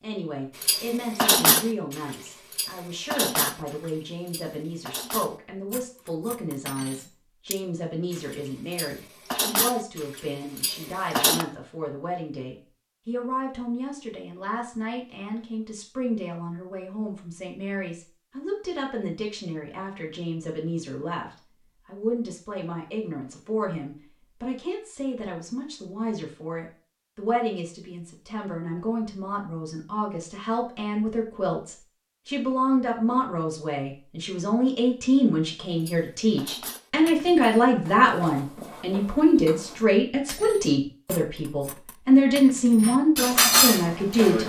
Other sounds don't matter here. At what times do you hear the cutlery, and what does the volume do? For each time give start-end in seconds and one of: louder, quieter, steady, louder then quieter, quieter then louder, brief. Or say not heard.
0.6-11.4 quieter then louder
35.8-44.4 louder.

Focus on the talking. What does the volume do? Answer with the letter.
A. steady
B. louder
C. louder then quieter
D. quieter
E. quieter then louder
B.